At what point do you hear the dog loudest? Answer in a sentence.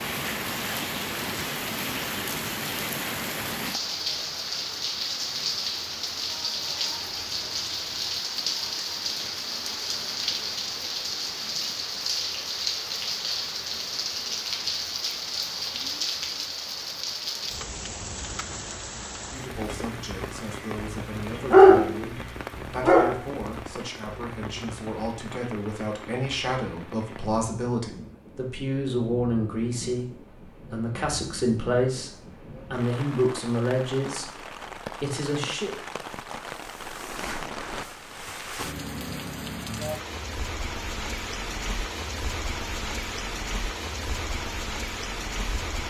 The volume of the dog peaks at 22 seconds.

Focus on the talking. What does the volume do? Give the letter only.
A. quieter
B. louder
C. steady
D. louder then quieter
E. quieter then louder
B.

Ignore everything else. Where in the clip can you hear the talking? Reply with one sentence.
The talking can be heard from 19.2 to 35.8 s.